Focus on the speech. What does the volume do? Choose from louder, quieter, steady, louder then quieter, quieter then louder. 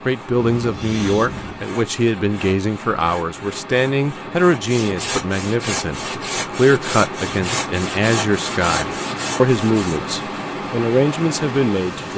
steady.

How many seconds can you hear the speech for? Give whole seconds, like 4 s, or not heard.
12 s.